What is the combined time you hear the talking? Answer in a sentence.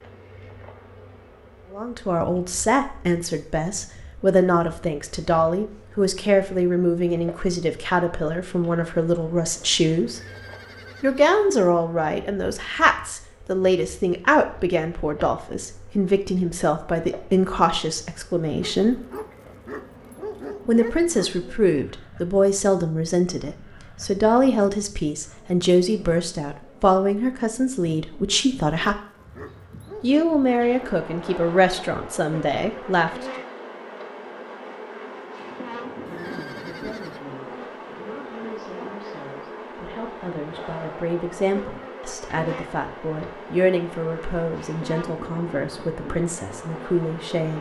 You can hear the talking for 39 seconds altogether.